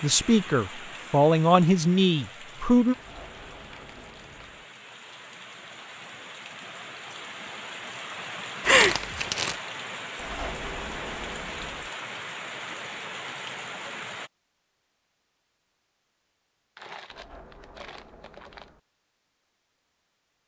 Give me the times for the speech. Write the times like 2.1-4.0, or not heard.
0.0-3.0.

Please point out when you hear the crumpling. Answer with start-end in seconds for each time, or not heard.
2.5-4.5, 8.6-9.6, 16.8-18.7.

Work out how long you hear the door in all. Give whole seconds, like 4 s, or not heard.
5 s.